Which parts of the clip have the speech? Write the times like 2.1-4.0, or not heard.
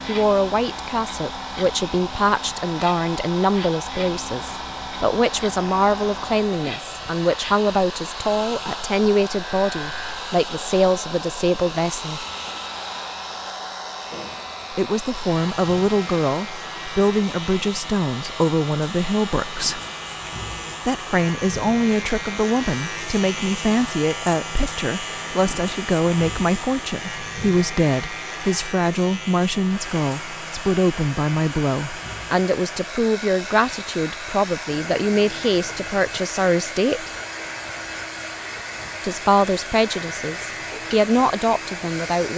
0.1-12.2, 14.7-19.8, 20.9-37.1, 39.0-42.3.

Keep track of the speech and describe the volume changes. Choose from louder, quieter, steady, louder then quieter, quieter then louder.
steady.